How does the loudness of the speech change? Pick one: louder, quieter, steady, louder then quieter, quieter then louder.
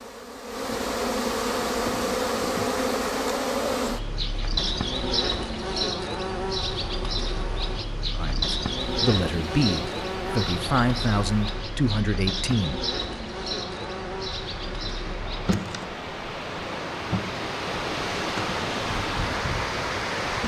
steady.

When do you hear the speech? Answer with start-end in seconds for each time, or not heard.
8.2-12.8.